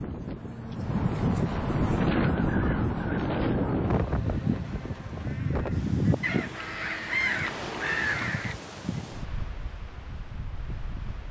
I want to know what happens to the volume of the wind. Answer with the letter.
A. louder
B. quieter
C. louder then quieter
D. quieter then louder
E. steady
B.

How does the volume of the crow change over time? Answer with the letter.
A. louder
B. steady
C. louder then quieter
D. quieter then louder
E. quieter
A.